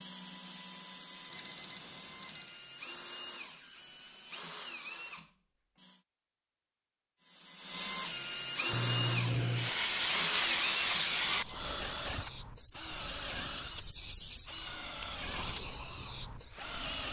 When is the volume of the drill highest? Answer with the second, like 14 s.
9 s.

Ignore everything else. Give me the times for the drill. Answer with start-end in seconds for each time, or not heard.
0.0-6.0, 7.2-17.0.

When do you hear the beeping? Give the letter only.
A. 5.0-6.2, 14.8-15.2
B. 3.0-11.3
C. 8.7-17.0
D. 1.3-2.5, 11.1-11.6
D.